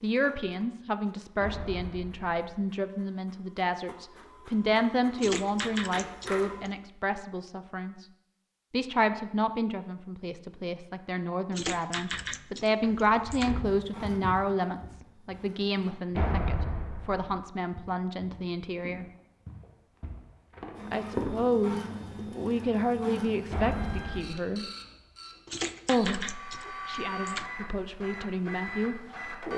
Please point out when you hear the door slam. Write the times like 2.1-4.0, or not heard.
1.4-2.4, 16.1-17.4, 23.5-24.2.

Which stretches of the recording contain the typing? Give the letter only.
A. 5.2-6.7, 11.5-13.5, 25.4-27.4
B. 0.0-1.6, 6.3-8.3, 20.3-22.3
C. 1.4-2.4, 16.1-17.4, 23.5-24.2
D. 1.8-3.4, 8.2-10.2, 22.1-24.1
A.